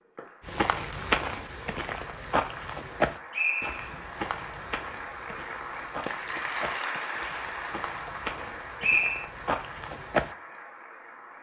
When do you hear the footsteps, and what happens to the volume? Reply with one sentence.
You can hear the footsteps from 0.5 to 10.3 s, getting quieter then louder.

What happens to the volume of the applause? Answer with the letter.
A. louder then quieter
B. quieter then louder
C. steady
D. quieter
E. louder
A.